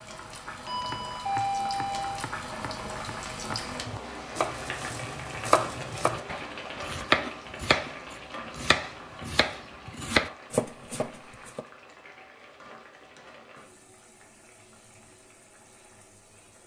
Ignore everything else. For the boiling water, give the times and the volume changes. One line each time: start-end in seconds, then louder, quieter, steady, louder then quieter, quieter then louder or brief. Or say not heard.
0.0-16.6 quieter.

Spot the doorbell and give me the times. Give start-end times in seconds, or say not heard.
0.7-2.2.